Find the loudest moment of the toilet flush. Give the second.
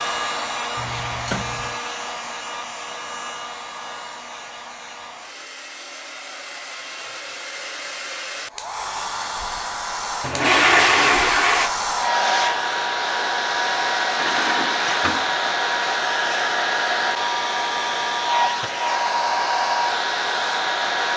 11 s.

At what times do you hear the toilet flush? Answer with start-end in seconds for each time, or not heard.
0.8-1.8, 10.2-11.7, 14.2-15.5.